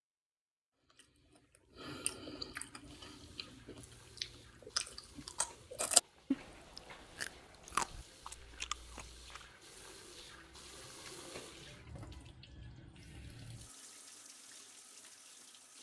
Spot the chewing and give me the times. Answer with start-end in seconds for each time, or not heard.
0.9-9.5.